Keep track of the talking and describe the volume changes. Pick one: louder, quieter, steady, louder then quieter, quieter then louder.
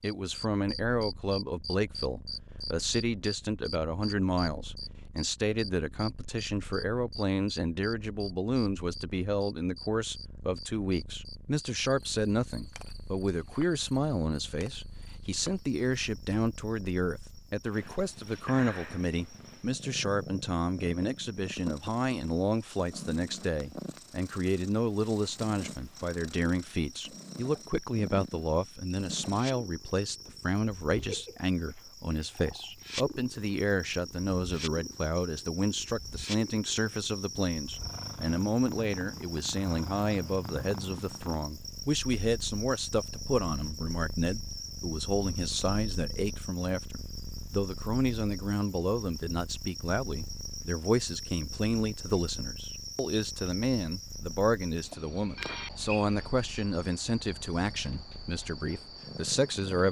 steady.